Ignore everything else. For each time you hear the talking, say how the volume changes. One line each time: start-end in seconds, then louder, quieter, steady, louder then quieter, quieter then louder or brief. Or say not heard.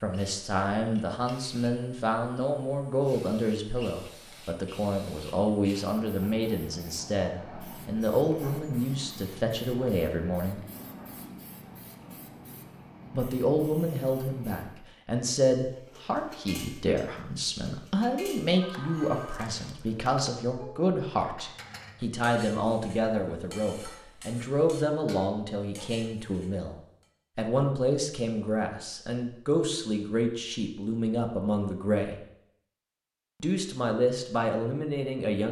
0.0-10.6 steady
13.1-32.2 steady
33.4-35.4 brief.